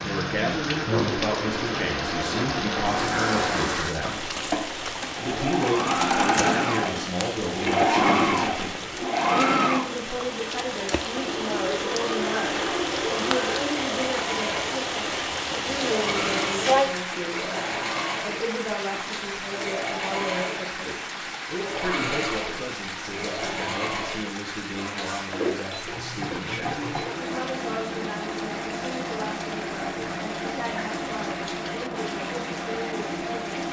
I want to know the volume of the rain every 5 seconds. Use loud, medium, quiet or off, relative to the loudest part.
loud, medium, loud, loud, medium, medium, medium.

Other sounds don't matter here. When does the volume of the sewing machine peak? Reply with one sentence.
The loudest moment of the sewing machine is at 8 seconds.